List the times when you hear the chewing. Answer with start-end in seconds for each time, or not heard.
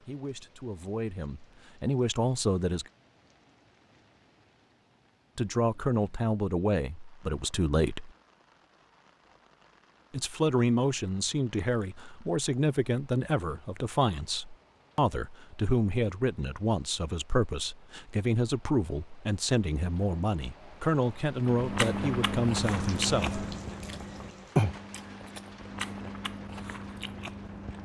21.4-27.7.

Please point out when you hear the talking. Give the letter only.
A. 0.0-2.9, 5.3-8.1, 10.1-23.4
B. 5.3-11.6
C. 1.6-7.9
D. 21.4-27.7
A.